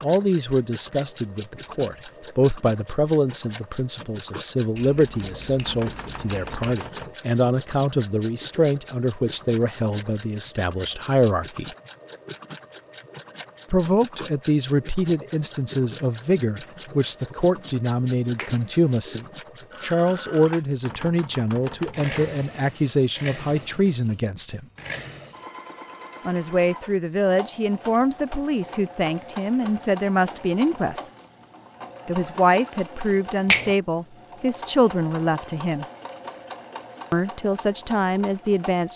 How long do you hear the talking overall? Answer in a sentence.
The talking can be heard for 33 seconds in total.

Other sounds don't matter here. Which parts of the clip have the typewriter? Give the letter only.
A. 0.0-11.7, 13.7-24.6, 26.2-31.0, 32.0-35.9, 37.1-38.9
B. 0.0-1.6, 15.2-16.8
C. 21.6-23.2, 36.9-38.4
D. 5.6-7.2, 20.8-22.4
D.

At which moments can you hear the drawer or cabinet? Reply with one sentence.
You can't hear the drawer or cabinet here.